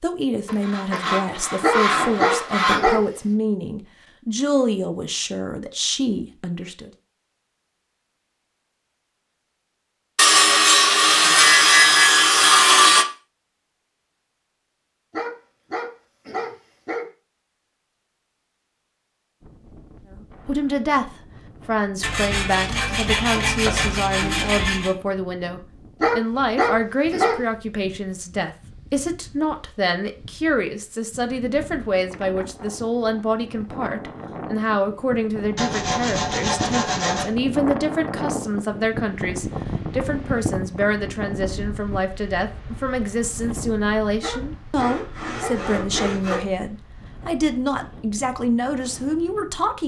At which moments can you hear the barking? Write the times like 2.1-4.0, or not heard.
1.6-3.0, 15.1-17.1, 26.0-27.4, 44.2-46.1.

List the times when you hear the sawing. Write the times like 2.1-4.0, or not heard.
0.5-2.8, 10.2-13.1, 22.0-24.9, 35.5-37.2, 44.8-46.4.